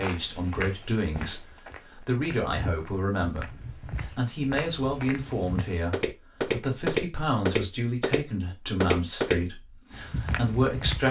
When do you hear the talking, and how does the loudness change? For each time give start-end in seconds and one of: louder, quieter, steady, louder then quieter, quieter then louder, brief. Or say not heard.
0.0-11.0 steady.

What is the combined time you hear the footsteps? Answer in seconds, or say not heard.
11 s.